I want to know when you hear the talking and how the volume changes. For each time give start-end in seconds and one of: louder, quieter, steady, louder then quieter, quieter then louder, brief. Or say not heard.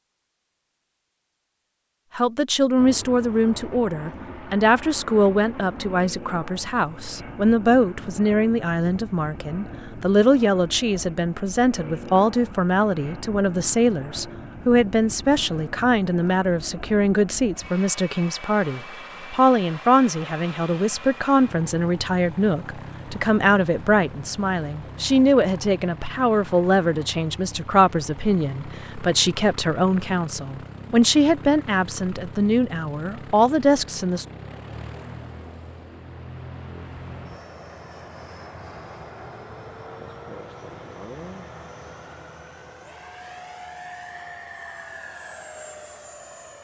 2.1-34.2 steady.